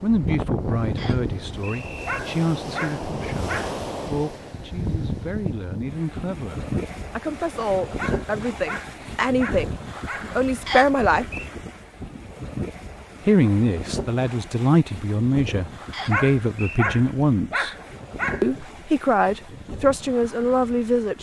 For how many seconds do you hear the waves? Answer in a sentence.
The waves can be heard for 21 seconds in total.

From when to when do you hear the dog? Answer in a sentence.
You can hear the dog from 2.0 to 3.8 s, from 8.0 to 10.3 s and from 16.1 to 18.5 s.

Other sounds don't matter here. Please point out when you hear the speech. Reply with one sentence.
You can hear the speech from 0.0 to 9.8 s, from 10.3 to 11.2 s, from 13.2 to 17.8 s and from 18.4 to 21.1 s.